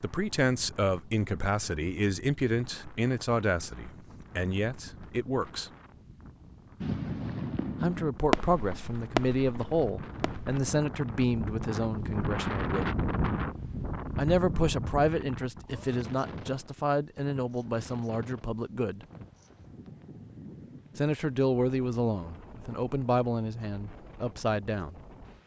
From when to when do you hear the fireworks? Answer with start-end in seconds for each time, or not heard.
6.8-10.6.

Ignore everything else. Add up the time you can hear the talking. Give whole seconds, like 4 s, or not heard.
20 s.